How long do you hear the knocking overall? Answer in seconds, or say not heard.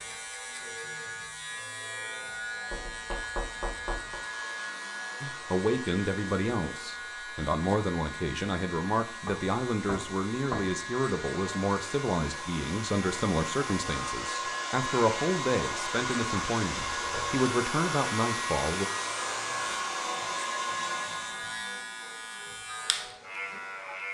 4 s.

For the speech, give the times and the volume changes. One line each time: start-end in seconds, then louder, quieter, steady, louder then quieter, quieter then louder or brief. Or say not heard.
5.2-18.9 steady.